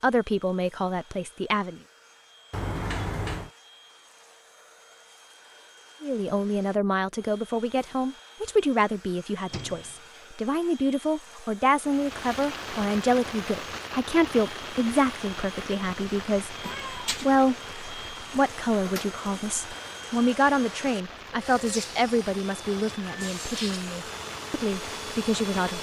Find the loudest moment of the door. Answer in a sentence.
The loudest moment of the door is at 3 seconds.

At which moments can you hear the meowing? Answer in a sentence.
You can hear the meowing from 16.6 to 17.4 s.